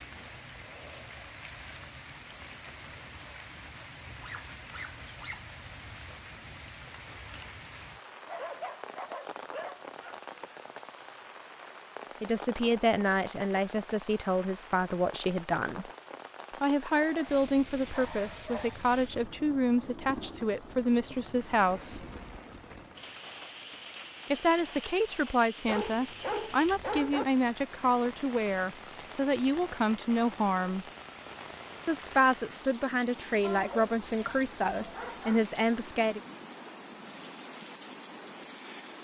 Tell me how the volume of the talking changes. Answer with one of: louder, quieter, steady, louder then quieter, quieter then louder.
steady.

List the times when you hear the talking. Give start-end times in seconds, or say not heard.
12.2-15.8, 16.6-22.1, 24.3-30.9, 31.9-36.2.